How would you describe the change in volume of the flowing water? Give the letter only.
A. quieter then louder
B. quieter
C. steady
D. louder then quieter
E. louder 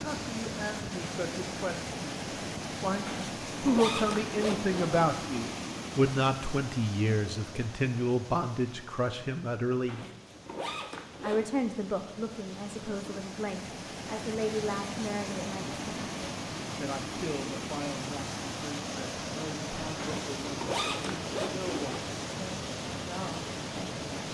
A.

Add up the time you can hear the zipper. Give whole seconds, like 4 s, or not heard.
6 s.